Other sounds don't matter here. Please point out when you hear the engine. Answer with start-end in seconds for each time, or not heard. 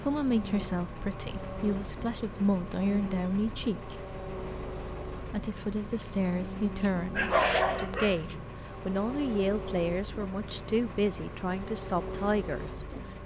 0.0-13.2.